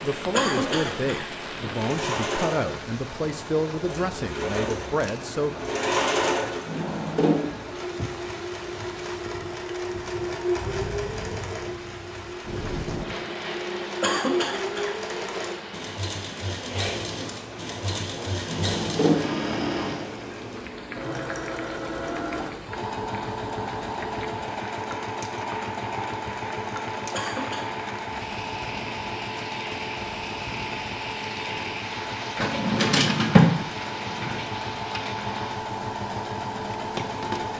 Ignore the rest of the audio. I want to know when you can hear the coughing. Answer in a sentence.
You can hear the coughing from 0.3 to 1.2 s, from 14.0 to 14.9 s and from 27.1 to 27.7 s.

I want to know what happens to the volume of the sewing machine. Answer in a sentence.
The volume of the sewing machine stays about the same.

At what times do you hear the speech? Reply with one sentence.
You can hear the speech from 0.0 to 5.5 s.